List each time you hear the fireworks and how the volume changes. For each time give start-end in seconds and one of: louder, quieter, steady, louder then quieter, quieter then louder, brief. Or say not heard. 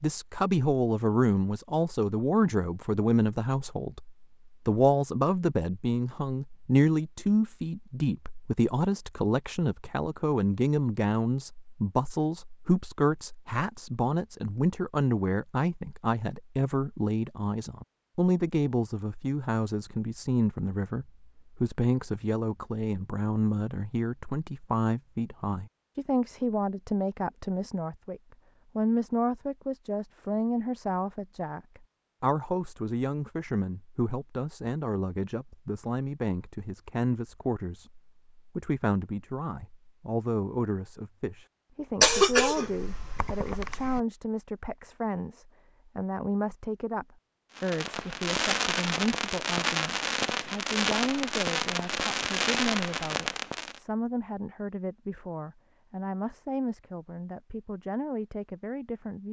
47.5-53.8 steady.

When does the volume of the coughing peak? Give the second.
42 s.